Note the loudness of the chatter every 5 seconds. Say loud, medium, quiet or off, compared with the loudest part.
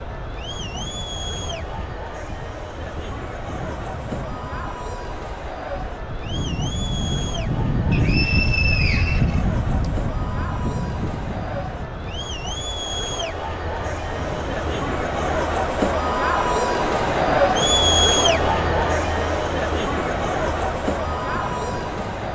quiet, quiet, medium, loud, medium.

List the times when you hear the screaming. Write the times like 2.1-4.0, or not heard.
not heard.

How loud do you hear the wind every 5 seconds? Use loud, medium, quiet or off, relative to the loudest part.
quiet, loud, medium, medium, medium.